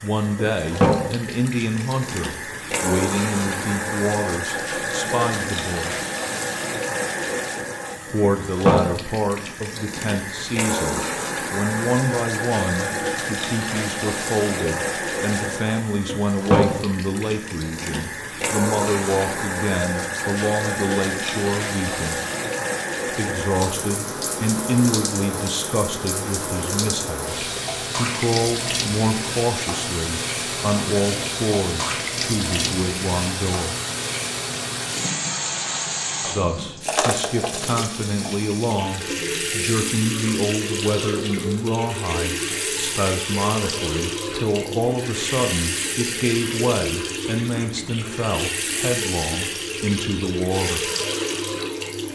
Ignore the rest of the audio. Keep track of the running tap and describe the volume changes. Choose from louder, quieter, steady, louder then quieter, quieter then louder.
steady.